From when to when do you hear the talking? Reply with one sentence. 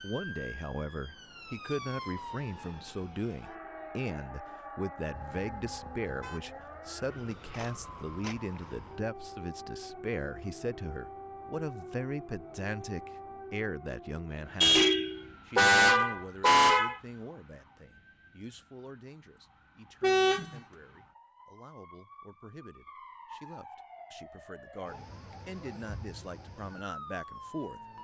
The talking can be heard from 0.0 to 27.8 s.